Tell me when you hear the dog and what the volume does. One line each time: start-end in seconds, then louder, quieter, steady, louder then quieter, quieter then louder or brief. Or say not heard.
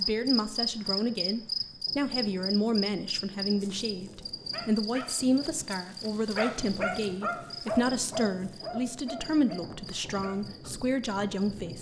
3.5-10.7 louder then quieter.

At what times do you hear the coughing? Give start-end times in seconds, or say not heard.
not heard.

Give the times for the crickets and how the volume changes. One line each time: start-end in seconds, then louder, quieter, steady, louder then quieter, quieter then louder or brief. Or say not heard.
0.0-11.7 quieter.